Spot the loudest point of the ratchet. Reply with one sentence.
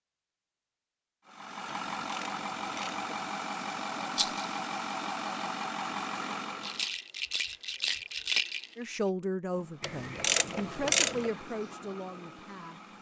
The volume of the ratchet peaks at 11 seconds.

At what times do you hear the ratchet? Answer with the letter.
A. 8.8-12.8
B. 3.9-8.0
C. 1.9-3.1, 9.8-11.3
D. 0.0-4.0
C.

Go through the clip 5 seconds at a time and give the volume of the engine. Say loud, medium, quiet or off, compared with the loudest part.
loud, loud, medium.